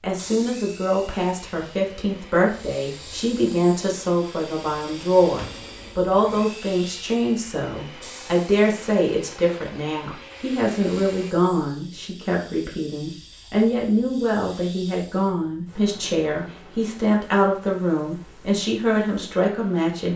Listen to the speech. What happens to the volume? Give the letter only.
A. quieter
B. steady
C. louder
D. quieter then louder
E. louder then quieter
B.